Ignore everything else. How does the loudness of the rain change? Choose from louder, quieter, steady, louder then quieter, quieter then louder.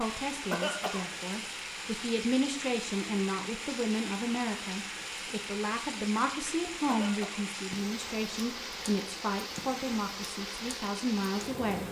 steady.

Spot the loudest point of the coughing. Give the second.
1 s.